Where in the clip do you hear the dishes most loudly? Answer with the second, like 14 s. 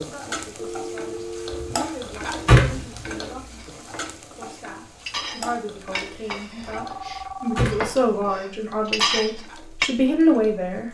9 s.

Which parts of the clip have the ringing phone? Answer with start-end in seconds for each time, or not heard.
0.6-1.8, 6.8-7.7.